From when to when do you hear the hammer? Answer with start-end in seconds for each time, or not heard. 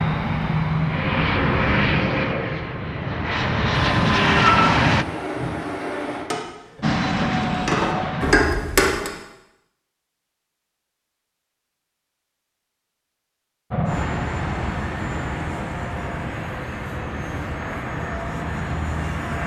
6.3-9.1.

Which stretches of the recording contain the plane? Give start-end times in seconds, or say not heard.
0.0-5.0, 6.8-8.3, 13.7-19.4.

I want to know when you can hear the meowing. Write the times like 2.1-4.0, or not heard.
3.7-6.2.